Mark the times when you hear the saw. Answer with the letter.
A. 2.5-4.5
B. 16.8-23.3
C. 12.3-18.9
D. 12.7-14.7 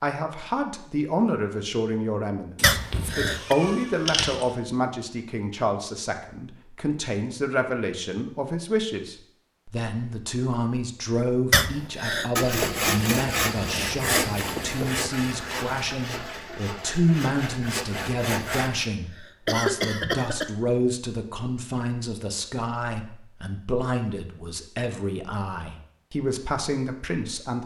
C.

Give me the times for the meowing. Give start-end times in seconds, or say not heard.
2.5-4.5.